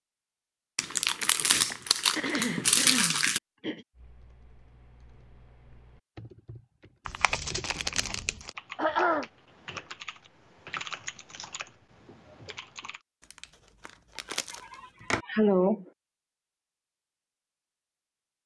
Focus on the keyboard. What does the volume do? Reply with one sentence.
The volume of the keyboard goes up, then down.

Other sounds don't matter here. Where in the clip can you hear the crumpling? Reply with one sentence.
You can hear the crumpling from 0.8 to 3.4 s, from 7.0 to 8.5 s and from 13.3 to 15.2 s.